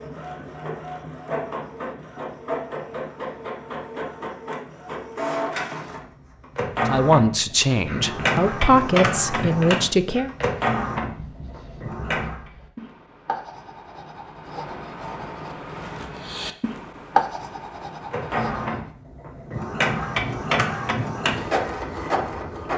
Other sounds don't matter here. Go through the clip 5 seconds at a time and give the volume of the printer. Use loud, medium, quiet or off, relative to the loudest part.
medium, loud, loud, loud, loud.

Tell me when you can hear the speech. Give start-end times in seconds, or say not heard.
6.8-10.3.